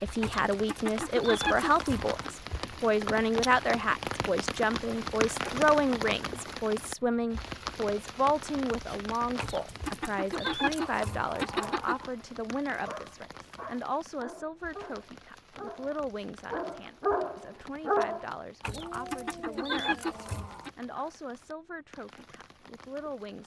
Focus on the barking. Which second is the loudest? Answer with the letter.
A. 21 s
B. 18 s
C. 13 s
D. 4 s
B.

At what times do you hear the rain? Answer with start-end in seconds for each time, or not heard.
0.0-23.4.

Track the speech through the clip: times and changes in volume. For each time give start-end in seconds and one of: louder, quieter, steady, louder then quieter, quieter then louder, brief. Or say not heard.
0.0-23.4 quieter.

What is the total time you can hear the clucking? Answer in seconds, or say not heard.
7 s.